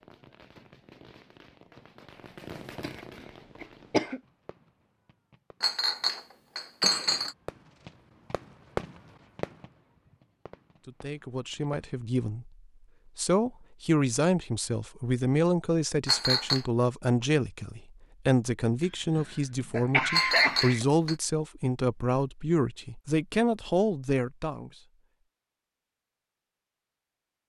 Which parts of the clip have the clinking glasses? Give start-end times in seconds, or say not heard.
5.6-7.3, 16.1-16.6, 20.1-21.1.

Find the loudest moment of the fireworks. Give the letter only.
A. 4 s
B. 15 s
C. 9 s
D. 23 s
C.